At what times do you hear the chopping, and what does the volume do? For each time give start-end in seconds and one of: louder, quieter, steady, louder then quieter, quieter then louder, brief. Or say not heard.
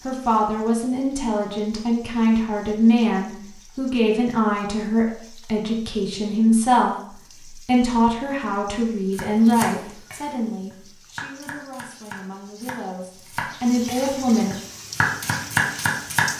9.2-16.3 quieter then louder.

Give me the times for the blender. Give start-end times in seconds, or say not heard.
not heard.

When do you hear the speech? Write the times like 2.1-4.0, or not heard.
0.1-14.6.